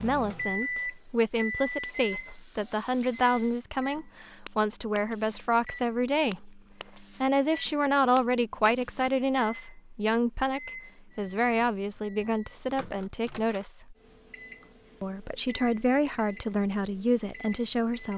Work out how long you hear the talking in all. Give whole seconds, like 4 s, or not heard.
17 s.